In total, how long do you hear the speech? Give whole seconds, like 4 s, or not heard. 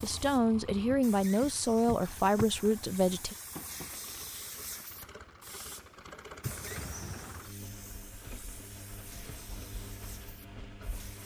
3 s.